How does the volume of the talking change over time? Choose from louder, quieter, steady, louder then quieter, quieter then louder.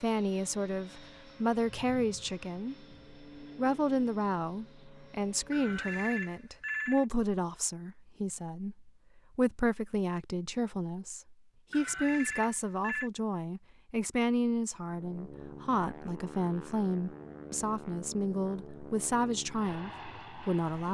steady.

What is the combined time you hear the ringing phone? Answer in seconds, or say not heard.
3 s.